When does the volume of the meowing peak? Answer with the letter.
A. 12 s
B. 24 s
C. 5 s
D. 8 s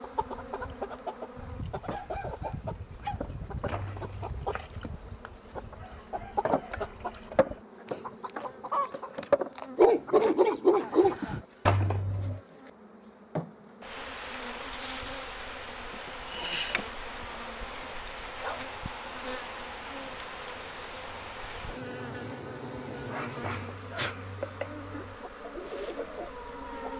A.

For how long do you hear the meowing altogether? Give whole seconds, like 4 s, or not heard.
3 s.